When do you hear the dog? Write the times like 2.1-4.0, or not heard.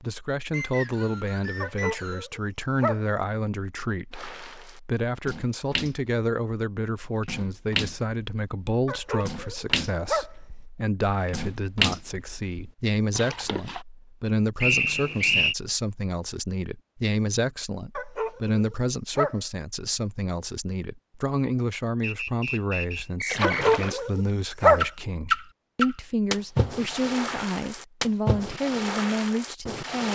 1.6-3.0, 8.8-10.3, 17.9-19.4, 23.4-24.9.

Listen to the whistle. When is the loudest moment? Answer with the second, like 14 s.
15 s.